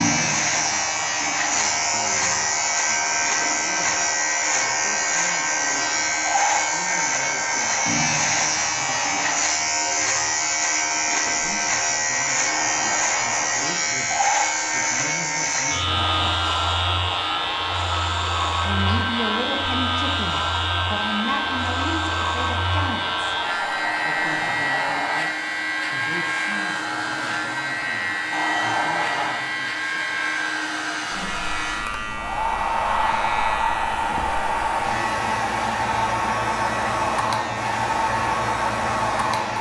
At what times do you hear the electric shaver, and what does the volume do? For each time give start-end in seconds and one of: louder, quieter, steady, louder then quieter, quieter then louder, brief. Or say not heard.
0.0-39.5 quieter.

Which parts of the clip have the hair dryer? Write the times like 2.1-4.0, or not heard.
0.0-39.5.